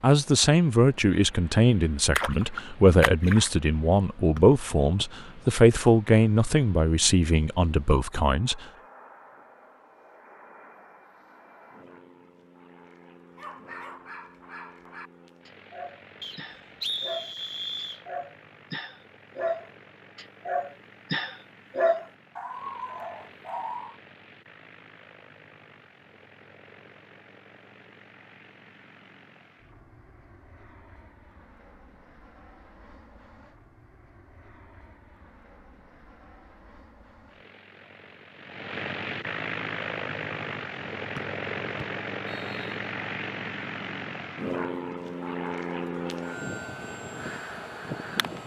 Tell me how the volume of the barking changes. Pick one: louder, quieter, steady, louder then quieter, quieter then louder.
louder then quieter.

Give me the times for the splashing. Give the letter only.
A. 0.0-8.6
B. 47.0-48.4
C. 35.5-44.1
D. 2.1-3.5
D.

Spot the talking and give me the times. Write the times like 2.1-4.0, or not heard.
0.0-8.6.